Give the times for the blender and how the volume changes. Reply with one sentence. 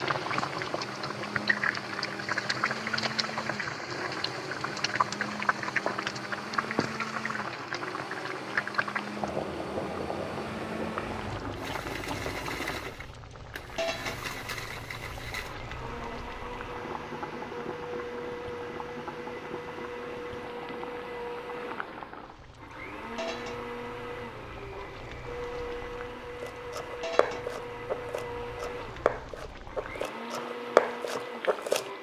The blender can be heard from 0.0 to 31.9 s, at a steady volume.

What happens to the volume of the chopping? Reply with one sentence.
The loudness of the chopping goes up.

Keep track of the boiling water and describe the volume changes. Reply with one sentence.
The loudness of the boiling water goes down.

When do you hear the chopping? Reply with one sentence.
The chopping can be heard from 26.4 to 31.9 s.